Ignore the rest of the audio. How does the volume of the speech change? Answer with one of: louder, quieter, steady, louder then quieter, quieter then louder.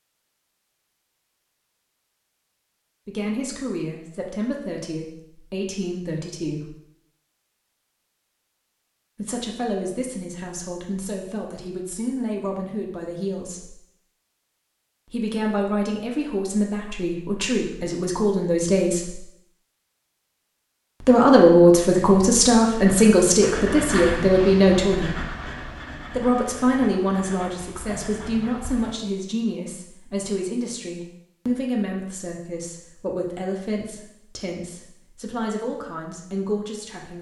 louder then quieter.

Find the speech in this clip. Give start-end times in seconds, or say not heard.
3.0-6.7, 9.2-13.8, 15.1-19.2, 21.0-25.2, 26.1-37.1.